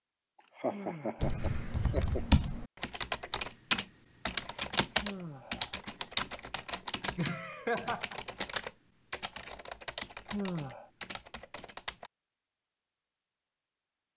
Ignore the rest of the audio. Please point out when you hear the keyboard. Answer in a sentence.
You can hear the keyboard from 1.2 to 12.1 s.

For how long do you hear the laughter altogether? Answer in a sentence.
The laughter can be heard for 3 seconds in total.